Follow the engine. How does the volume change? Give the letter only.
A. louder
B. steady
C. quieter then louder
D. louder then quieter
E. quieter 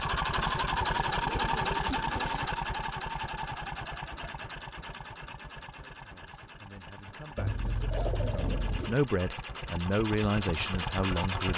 C.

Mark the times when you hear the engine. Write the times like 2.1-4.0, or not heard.
0.0-11.5.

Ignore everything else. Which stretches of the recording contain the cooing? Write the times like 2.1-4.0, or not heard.
0.5-2.5, 7.3-8.9.